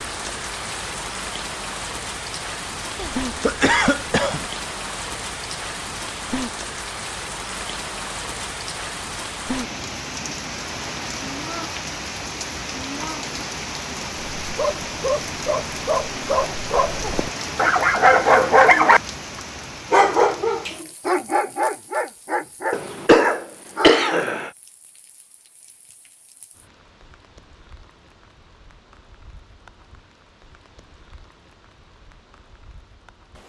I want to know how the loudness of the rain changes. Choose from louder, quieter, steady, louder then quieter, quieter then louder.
quieter.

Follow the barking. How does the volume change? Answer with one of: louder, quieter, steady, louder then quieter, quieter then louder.
louder then quieter.